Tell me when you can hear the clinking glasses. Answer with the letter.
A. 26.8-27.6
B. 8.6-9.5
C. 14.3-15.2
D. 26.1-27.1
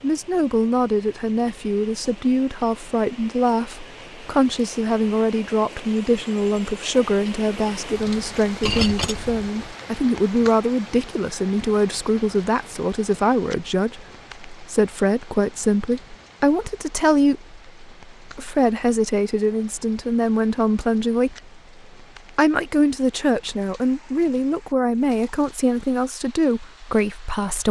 B.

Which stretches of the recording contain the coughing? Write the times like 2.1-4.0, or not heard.
not heard.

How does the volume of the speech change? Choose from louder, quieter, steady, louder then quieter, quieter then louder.
steady.